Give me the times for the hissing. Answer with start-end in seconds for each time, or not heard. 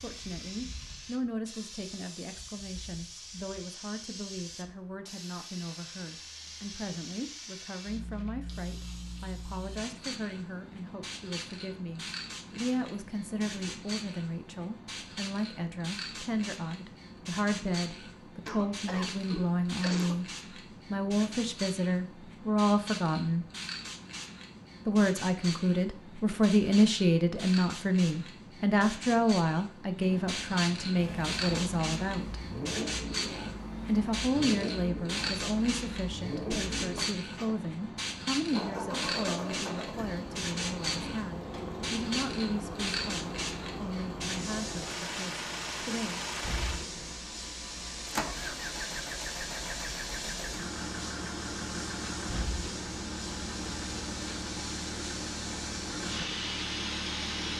0.0-57.5.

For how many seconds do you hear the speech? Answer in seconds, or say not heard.
43 s.